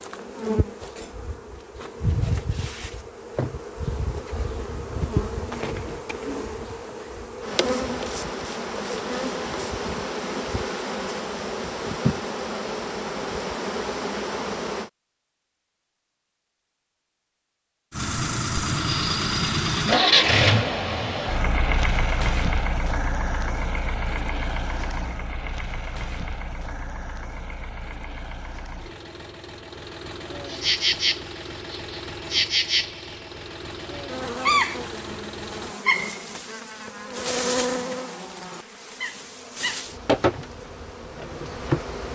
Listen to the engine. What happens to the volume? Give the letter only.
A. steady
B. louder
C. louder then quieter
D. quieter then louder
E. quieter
E.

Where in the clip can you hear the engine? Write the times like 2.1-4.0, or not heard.
17.9-35.8.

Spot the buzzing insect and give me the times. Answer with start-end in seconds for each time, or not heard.
0.0-14.9, 30.4-42.1.